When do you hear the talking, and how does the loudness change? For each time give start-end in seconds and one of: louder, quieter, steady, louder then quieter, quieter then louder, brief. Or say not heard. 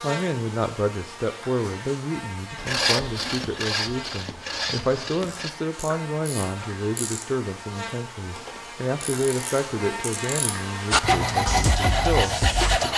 0.0-12.9 steady.